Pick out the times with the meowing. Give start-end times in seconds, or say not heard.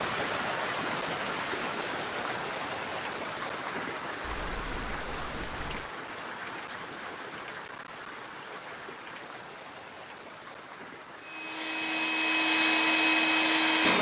4.2-5.9.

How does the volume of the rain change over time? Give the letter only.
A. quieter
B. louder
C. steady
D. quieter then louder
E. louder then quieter
A.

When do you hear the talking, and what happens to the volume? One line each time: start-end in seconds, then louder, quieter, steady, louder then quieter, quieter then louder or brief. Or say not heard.
not heard.